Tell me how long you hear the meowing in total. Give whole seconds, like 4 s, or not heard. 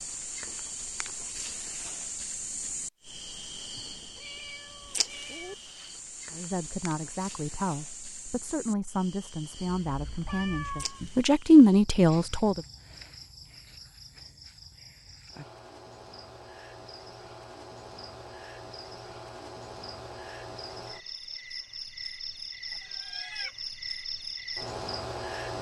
4 s.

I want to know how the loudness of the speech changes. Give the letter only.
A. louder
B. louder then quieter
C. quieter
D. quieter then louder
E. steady
A.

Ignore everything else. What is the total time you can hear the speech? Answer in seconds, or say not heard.
6 s.